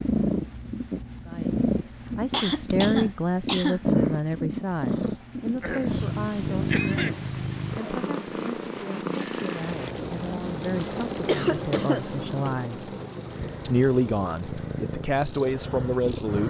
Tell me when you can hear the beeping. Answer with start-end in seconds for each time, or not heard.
9.1-9.8.